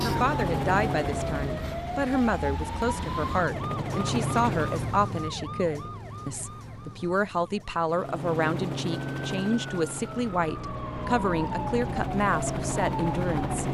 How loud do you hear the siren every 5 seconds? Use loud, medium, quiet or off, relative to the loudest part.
loud, medium, loud.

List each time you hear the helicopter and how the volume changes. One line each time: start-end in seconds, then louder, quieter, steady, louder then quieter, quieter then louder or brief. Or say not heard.
0.0-5.0 quieter then louder
7.8-13.6 quieter then louder.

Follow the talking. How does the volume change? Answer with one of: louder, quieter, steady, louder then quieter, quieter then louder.
steady.